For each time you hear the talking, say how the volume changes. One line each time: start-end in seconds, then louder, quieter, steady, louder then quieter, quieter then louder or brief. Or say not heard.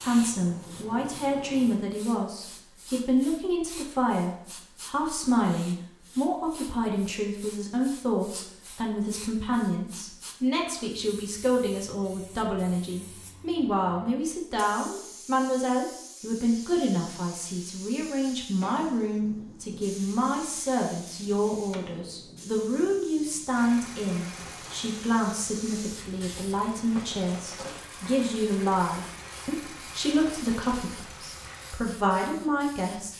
0.0-33.1 steady.